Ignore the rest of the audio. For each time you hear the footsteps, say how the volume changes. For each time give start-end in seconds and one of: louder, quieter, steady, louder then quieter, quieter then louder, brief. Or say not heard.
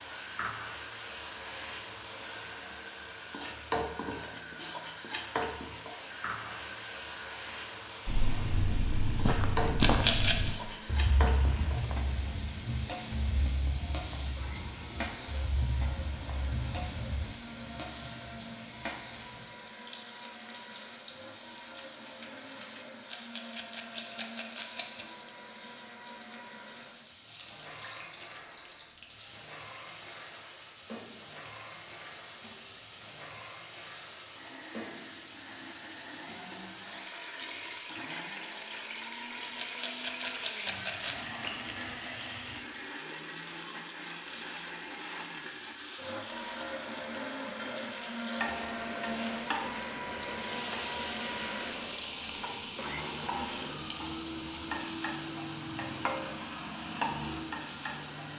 8.1-17.3 quieter.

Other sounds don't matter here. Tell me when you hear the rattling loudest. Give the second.
10 s.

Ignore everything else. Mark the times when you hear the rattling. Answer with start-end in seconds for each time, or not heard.
9.8-10.4, 23.1-25.1, 39.5-41.1.